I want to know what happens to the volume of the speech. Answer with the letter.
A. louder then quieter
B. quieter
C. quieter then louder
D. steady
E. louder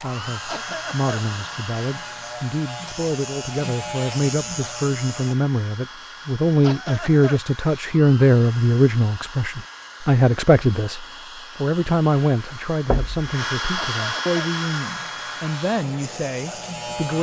A.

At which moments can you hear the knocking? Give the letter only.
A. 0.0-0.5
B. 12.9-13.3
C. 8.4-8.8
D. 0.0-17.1
B.